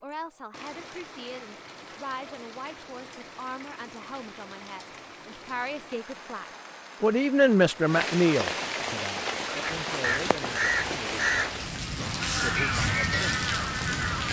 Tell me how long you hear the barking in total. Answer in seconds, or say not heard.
not heard.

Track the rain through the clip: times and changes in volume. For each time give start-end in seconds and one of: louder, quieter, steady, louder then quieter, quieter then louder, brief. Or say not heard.
0.0-14.2 louder.